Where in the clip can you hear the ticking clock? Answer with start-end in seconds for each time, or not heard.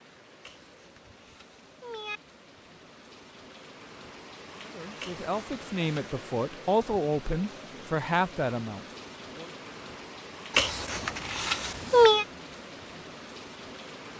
not heard.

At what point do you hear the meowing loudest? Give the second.
12 s.